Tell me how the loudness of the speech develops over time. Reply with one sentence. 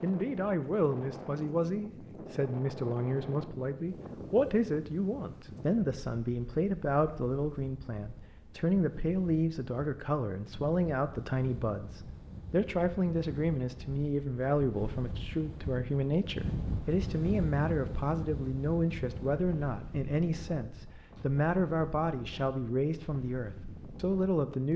The loudness of the speech stays about the same.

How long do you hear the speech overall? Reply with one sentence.
You can hear the speech for 25 seconds altogether.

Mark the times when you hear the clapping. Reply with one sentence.
You can't hear the clapping here.